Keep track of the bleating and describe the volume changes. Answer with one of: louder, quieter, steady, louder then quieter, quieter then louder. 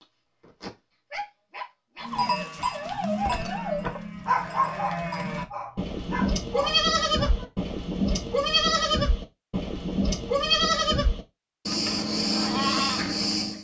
louder.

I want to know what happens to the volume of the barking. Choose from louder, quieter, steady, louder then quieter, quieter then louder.
louder then quieter.